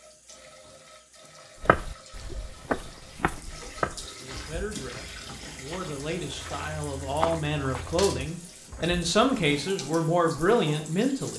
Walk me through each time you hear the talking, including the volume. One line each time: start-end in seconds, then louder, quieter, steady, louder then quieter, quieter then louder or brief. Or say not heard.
4.2-11.3 louder.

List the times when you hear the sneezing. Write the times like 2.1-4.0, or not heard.
not heard.